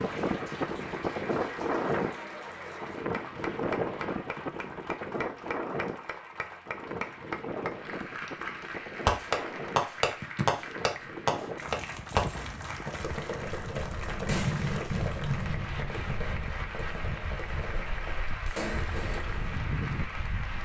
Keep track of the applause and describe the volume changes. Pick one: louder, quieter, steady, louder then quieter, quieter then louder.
steady.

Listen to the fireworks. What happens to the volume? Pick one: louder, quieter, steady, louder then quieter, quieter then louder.
quieter.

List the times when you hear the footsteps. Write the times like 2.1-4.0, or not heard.
not heard.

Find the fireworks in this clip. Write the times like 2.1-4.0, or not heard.
9.1-19.6.